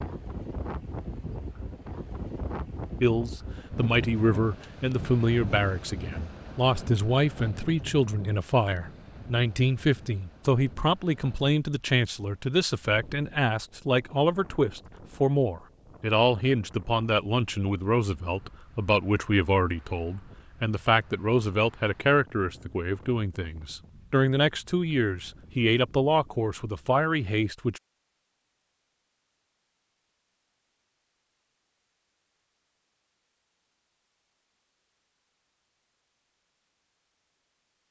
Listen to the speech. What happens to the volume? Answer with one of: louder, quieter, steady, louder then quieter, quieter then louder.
steady.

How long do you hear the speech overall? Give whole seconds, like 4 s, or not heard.
25 s.